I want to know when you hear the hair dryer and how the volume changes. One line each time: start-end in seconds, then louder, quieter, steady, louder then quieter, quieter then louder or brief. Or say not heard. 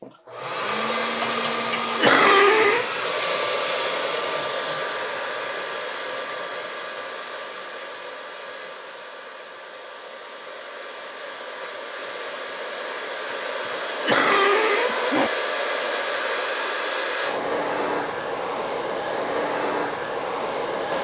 0.0-20.9 quieter then louder.